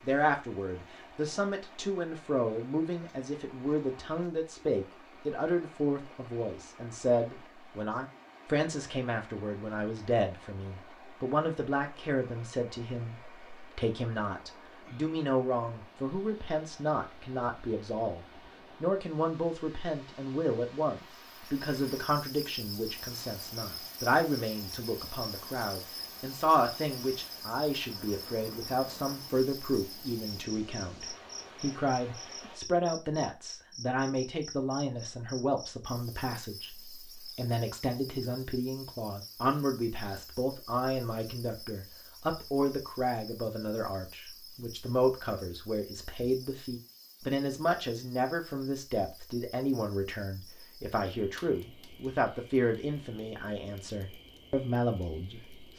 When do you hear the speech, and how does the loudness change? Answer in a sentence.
The speech can be heard from 0.0 to 55.7 s, at a steady volume.